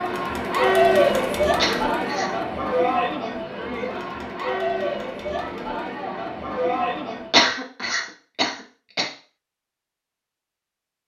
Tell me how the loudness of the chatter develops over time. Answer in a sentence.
The loudness of the chatter goes down.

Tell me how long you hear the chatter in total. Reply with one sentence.
The chatter can be heard for 7 seconds in total.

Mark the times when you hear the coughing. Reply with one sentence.
The coughing can be heard from 1.6 to 2.3 s and from 7.3 to 9.1 s.